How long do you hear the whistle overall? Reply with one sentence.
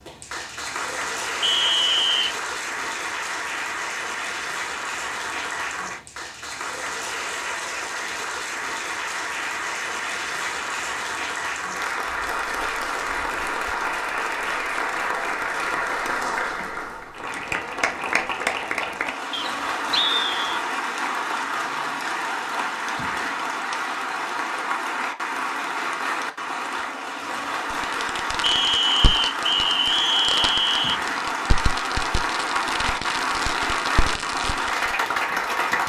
The whistle can be heard for 5 seconds in total.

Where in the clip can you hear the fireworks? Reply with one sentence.
You can hear the fireworks from 27.7 to 35.0 s.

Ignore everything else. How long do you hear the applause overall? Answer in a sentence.
You can hear the applause for 36 seconds altogether.